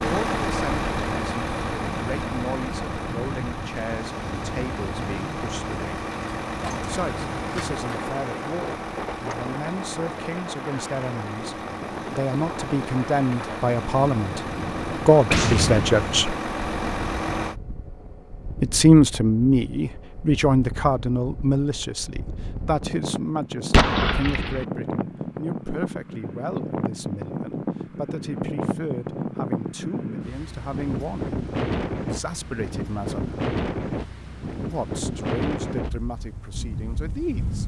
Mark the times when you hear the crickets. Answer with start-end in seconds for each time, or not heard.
not heard.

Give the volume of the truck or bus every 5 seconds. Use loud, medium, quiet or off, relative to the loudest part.
loud, loud, medium, loud, off, off, off, off.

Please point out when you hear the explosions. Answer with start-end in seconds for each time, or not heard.
15.3-16.4, 23.7-24.6.